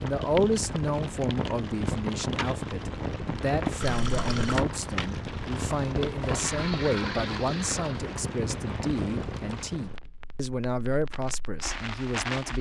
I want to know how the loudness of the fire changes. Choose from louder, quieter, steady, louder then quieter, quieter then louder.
quieter.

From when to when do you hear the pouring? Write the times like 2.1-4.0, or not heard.
3.8-4.7, 6.3-8.0.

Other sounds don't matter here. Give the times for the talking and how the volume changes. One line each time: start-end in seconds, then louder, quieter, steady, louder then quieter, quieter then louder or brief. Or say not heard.
0.0-12.5 steady.